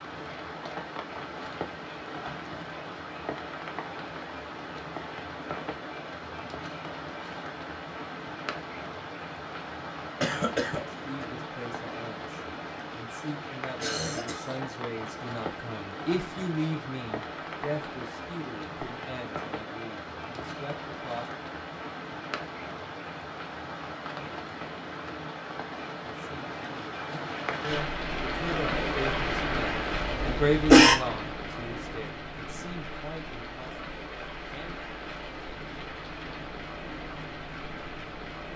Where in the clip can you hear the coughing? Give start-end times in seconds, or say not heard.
10.2-11.2, 13.8-14.6, 29.9-30.9.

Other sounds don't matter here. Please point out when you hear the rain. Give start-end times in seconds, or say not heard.
0.0-38.5.